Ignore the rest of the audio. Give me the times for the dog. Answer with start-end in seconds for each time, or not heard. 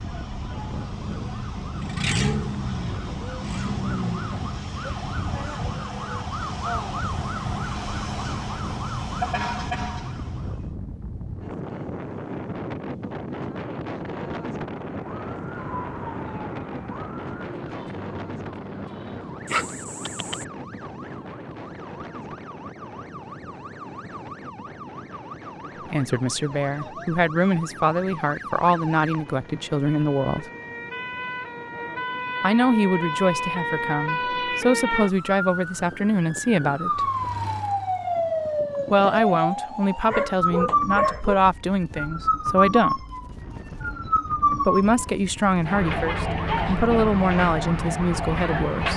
19.4-20.4, 38.8-41.4.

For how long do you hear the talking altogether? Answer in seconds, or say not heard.
18 s.